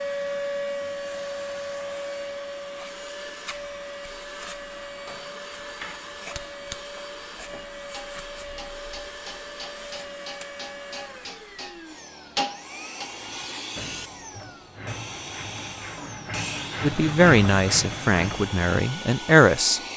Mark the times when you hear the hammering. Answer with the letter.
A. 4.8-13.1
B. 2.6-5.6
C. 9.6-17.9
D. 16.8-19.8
A.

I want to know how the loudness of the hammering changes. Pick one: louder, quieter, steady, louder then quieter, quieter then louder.
louder.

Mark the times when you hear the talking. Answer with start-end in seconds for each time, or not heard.
16.8-19.8.